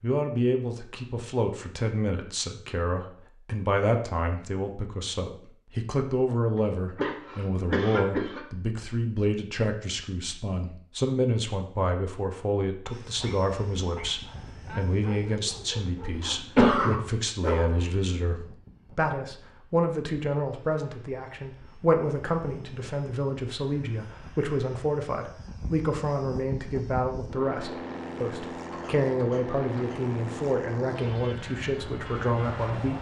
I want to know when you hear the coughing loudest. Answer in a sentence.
The loudest moment of the coughing is at 17 seconds.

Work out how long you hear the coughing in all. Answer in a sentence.
You can hear the coughing for 3 seconds altogether.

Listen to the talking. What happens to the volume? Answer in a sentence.
The loudness of the talking stays about the same.